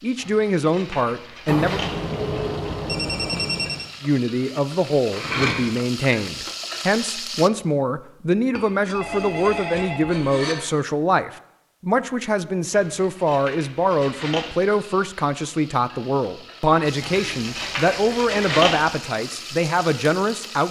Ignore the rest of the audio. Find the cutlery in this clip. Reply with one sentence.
You can hear the cutlery from 0.1 to 2.0 s, from 5.1 to 5.6 s, from 8.6 to 10.6 s, from 12.7 to 14.6 s and from 17.0 to 18.8 s.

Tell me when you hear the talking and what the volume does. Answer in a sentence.
You can hear the talking briefly from 0.0 to 1.8 s; and from 4.0 to 20.6 s, at a steady volume.